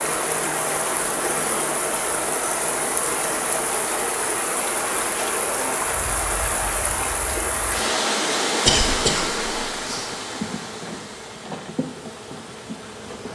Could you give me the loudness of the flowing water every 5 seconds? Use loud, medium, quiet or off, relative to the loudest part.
loud, loud, quiet.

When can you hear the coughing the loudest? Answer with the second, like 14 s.
9 s.